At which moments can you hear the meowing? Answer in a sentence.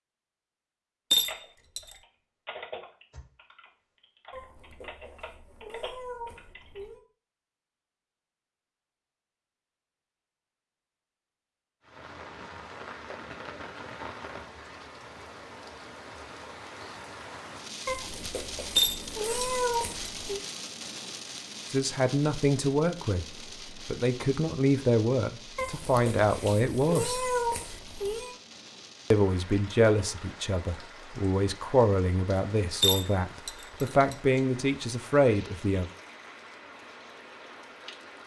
You can hear the meowing from 4.3 to 7.0 s, from 17.9 to 20.4 s and from 25.6 to 28.4 s.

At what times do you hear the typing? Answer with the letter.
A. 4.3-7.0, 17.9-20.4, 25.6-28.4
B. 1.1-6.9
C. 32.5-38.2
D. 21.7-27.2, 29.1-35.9
B.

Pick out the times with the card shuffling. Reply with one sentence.
You can't hear the card shuffling here.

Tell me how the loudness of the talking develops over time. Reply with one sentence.
The loudness of the talking stays about the same.